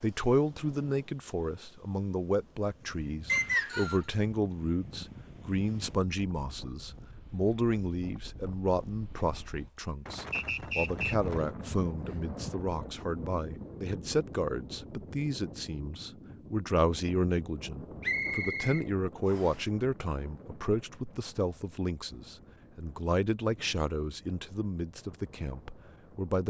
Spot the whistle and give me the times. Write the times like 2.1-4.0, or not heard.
3.2-4.0, 10.3-11.2, 18.0-19.6.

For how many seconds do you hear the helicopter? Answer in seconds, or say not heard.
not heard.